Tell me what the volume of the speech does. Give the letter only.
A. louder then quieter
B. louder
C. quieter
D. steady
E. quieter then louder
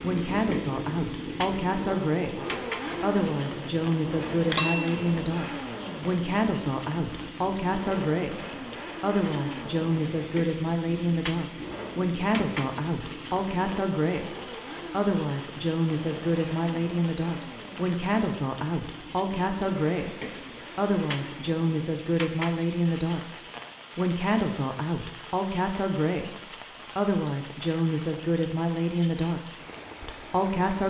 D.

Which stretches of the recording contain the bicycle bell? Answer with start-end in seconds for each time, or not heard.
4.5-5.3.